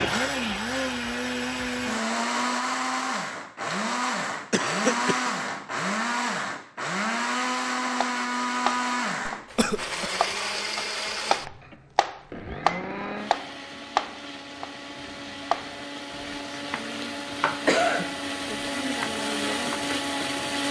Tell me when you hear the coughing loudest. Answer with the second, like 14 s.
18 s.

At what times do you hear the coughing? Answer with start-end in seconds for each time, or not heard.
4.5-5.3, 9.2-10.1, 17.6-18.1.